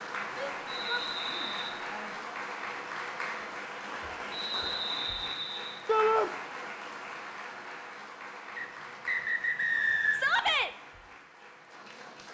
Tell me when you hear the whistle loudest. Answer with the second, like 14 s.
10 s.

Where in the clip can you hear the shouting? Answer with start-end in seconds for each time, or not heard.
0.3-2.4, 5.8-6.3, 10.1-10.7.